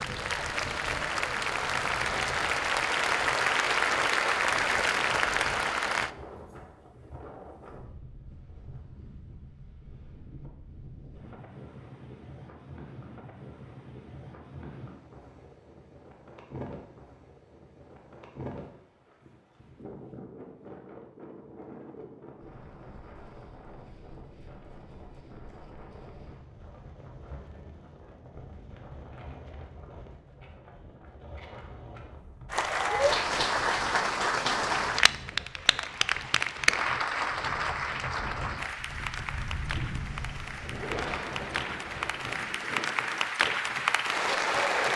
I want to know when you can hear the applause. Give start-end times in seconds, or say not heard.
0.0-6.1, 32.5-44.9.